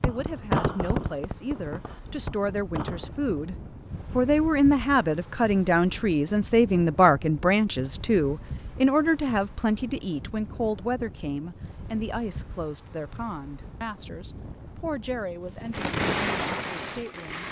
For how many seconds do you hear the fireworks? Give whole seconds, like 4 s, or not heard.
5 s.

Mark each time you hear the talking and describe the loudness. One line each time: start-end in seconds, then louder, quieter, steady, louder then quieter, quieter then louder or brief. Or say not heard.
0.0-17.4 louder then quieter.